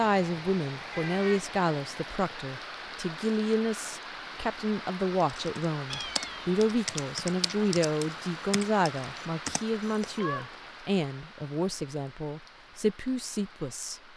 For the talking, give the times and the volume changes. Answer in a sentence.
You can hear the talking from 0.0 to 14.0 s, at a steady volume.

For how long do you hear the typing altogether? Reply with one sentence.
The typing can be heard for 5 seconds in total.